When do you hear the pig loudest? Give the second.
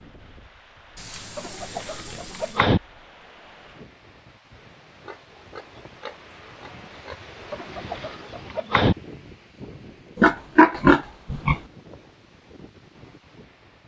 11 s.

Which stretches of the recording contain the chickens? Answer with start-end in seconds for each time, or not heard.
1.4-2.8, 7.5-8.9.